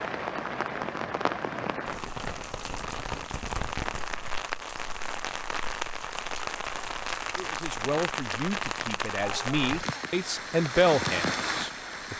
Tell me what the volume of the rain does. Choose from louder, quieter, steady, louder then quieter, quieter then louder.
steady.